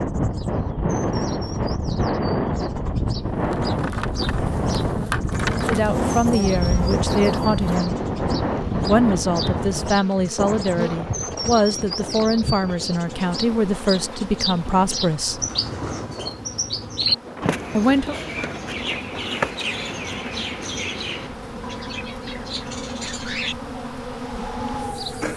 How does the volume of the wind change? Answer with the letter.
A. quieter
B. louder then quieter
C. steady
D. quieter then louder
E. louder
A.